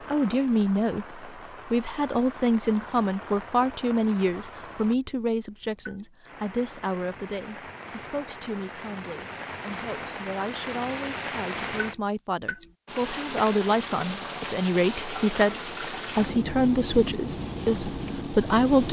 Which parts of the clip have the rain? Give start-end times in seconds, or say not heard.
0.0-18.8.